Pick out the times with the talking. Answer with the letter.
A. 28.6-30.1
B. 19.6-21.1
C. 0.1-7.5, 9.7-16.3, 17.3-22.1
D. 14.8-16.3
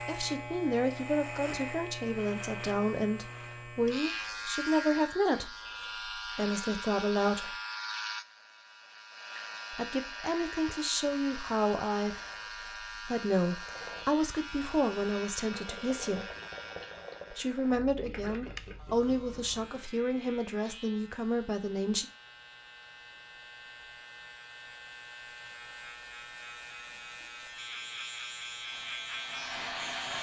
C.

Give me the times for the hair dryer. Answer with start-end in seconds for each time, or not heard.
28.6-30.1.